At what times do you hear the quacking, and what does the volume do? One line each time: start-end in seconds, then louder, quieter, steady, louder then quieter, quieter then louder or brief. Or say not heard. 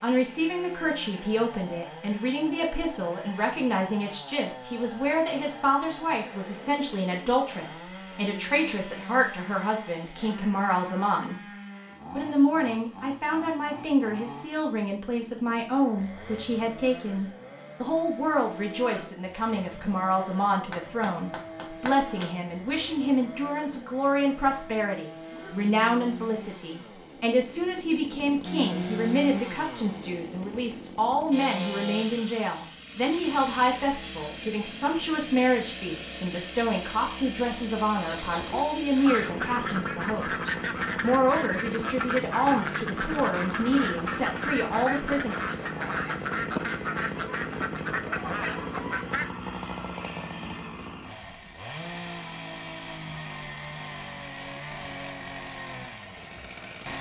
38.0-49.3 steady.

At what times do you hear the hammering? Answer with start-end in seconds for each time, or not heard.
20.7-22.5.